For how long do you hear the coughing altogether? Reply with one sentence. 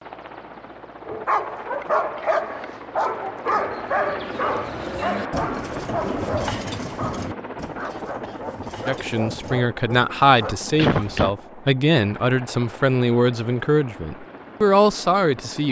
You can hear the coughing for 3 seconds altogether.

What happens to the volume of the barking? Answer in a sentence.
The volume of the barking goes down.